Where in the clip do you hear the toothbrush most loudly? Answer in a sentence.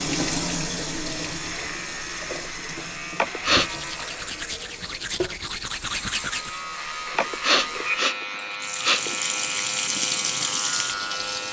The volume of the toothbrush peaks at 6 seconds.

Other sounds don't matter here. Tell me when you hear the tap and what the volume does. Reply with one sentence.
The tap can be heard from 0.0 to 11.4 s, getting quieter then louder.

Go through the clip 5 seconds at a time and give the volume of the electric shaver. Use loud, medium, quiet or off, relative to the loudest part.
medium, loud, loud.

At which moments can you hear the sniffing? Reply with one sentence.
You can hear the sniffing from 3.1 to 3.7 s and from 7.2 to 9.2 s.